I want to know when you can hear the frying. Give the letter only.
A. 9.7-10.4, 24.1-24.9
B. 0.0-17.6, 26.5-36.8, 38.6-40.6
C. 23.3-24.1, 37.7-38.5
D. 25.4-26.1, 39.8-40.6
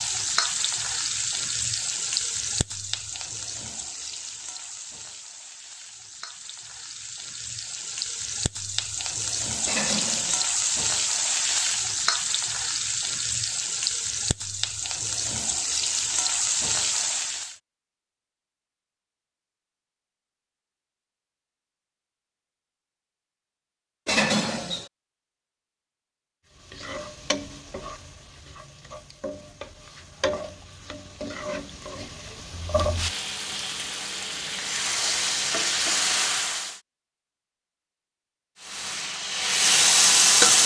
B.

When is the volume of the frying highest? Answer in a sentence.
The loudest moment of the frying is at 40 seconds.